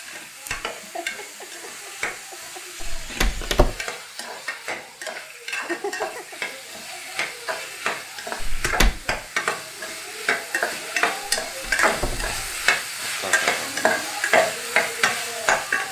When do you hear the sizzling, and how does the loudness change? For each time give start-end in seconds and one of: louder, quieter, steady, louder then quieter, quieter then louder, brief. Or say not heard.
0.0-15.8 louder.